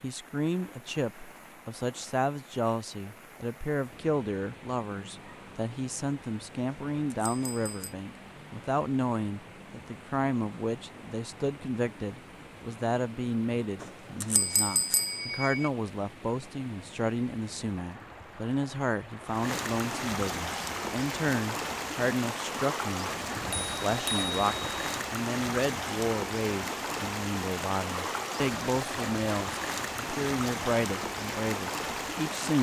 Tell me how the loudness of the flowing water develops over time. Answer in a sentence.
The volume of the flowing water goes up.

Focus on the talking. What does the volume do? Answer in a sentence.
The loudness of the talking stays about the same.